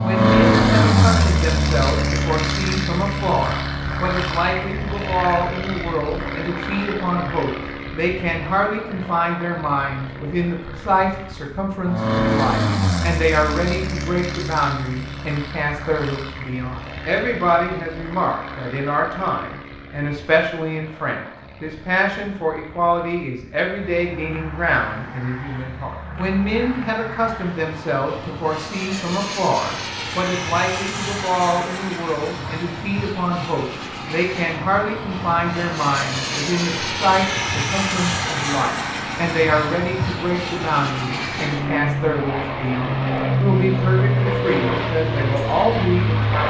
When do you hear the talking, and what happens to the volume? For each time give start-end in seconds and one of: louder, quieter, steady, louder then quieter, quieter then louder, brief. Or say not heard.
0.0-46.4 steady.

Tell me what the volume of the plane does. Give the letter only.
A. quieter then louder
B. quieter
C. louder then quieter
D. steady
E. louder
A.